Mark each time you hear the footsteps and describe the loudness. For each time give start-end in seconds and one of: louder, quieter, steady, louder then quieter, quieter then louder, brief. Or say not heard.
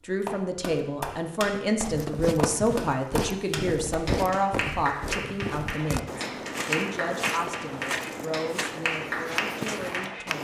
1.8-10.3 steady.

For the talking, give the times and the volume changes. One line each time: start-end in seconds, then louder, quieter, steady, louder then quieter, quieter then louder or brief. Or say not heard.
0.0-10.3 quieter.